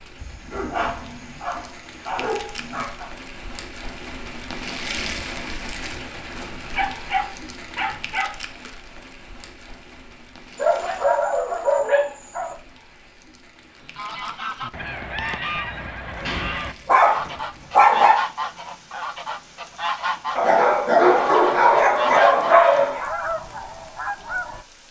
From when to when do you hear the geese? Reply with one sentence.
The geese can be heard from 13.8 to 24.6 s.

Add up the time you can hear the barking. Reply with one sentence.
You can hear the barking for 11 seconds altogether.